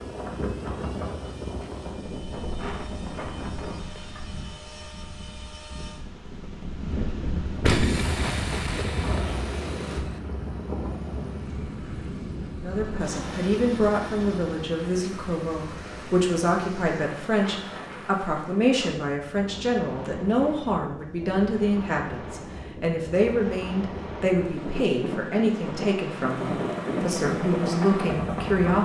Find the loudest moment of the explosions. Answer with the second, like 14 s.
8 s.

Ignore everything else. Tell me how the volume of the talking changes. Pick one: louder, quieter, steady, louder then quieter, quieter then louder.
steady.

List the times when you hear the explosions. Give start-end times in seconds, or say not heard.
7.6-10.2.